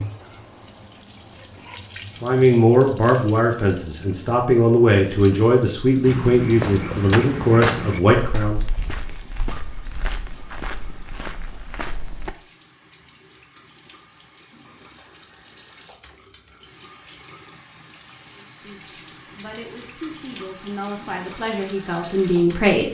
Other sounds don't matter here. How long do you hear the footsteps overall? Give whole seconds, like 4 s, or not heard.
6 s.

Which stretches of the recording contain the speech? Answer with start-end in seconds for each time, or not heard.
2.2-8.6, 18.4-22.8.